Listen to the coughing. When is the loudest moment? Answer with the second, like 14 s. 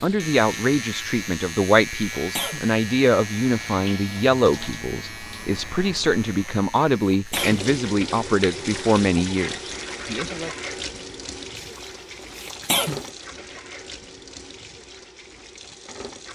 13 s.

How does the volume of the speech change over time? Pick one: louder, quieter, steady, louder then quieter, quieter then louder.
steady.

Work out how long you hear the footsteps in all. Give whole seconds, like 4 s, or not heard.
not heard.